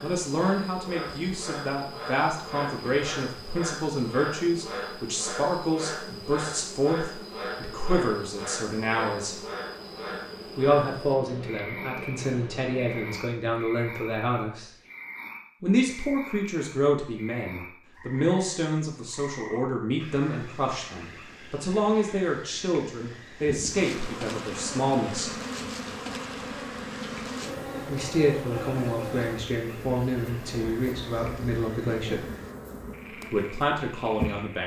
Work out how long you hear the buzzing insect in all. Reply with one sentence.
The buzzing insect can be heard for 24 seconds in total.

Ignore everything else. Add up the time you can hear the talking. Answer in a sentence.
You can hear the talking for 29 seconds altogether.